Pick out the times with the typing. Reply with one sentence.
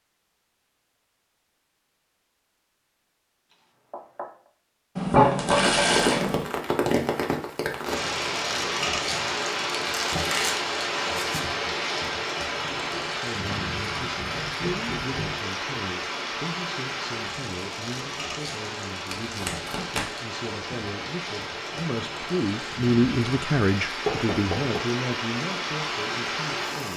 The typing can't be heard in this clip.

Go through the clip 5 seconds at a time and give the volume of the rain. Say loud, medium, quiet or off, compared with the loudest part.
off, loud, loud, medium, medium, loud.